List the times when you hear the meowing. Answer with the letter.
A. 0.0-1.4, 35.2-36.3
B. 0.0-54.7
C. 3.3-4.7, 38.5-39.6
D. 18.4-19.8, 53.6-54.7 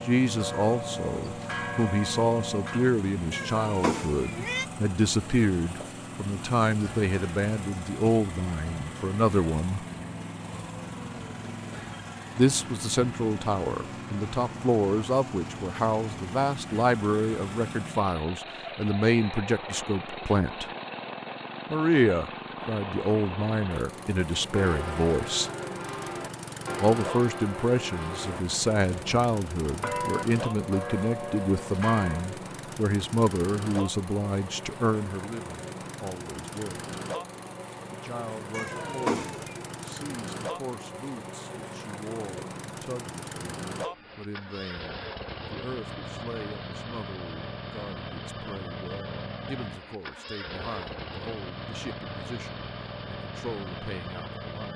C.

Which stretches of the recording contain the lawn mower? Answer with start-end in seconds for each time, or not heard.
0.0-54.7.